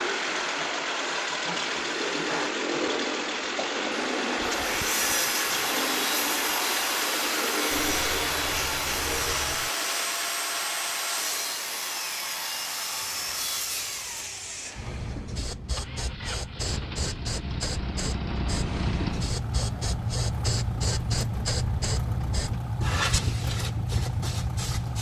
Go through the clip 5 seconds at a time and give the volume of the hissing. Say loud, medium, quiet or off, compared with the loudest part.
medium, medium, medium, loud, loud.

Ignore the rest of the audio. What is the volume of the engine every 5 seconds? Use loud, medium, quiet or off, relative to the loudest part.
loud, loud, quiet, medium, loud.